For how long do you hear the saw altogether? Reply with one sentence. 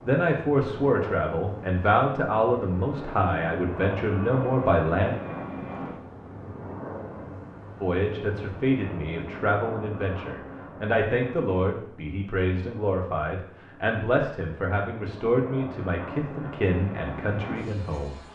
The saw can't be heard in this clip.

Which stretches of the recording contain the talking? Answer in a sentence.
You can hear the talking from 0.0 to 5.2 s and from 7.8 to 18.2 s.